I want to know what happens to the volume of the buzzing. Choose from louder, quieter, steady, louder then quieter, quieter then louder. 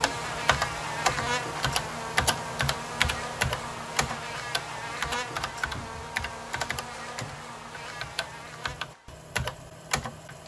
quieter.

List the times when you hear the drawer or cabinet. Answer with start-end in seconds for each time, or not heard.
5.8-6.2.